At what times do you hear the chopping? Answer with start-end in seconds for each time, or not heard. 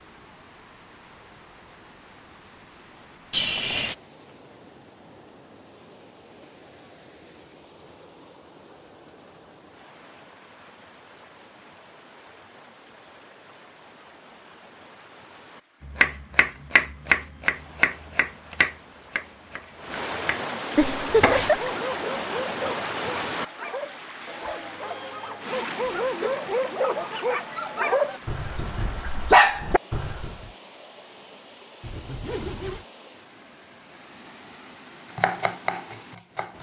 15.8-21.6, 35.1-36.5.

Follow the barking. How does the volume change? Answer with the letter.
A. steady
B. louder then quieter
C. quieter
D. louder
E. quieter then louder
D.